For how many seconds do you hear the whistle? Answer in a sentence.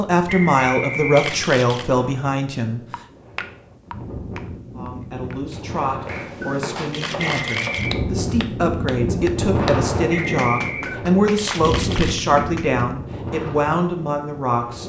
You can hear the whistle for 3 seconds altogether.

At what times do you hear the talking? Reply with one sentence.
You can hear the talking from 0.0 to 2.8 s and from 4.8 to 14.8 s.